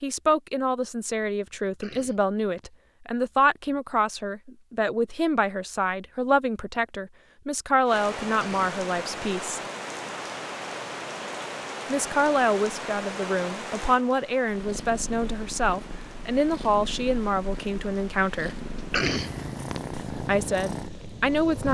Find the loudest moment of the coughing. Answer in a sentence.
The loudest moment of the coughing is at 19 seconds.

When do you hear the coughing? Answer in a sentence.
You can hear the coughing from 1.6 to 2.7 s, from 8.4 to 9.2 s and from 18.8 to 19.8 s.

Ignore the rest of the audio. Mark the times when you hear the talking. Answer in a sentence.
You can hear the talking from 0.0 to 9.6 s, from 11.8 to 18.6 s and from 19.9 to 21.6 s.